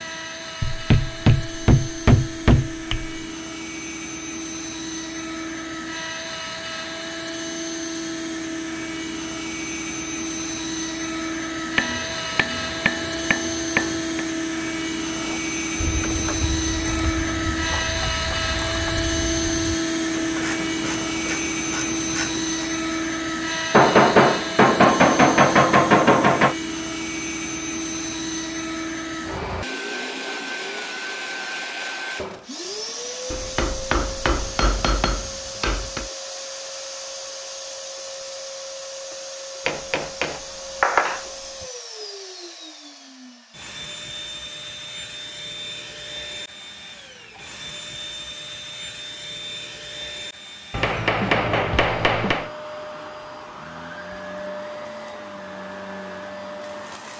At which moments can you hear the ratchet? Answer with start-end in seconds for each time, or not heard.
15.2-22.6.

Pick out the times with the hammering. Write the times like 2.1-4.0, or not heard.
0.6-3.2, 11.8-14.2, 23.7-26.6, 33.3-36.0, 39.6-41.2, 50.7-52.5.